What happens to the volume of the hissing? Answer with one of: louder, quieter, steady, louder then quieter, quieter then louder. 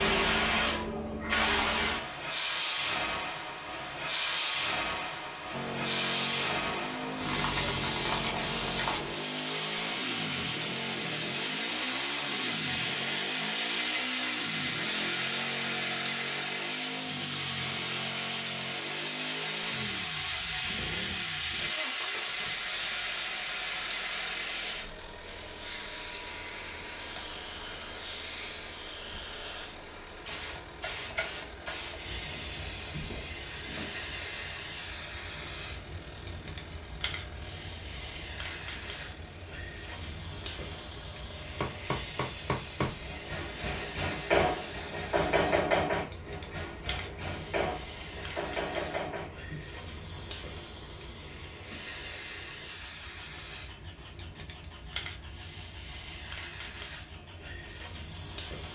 quieter.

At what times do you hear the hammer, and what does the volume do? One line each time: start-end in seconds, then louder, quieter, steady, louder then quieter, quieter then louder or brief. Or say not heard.
41.6-49.6 louder then quieter.